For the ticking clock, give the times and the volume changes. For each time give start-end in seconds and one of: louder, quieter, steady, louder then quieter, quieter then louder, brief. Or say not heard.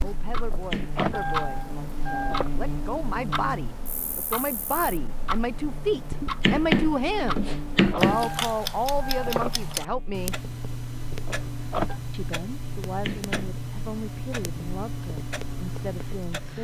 0.0-16.5 steady.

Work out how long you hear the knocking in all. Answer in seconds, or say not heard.
3 s.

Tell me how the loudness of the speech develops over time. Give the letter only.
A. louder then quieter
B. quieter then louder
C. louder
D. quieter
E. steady
A.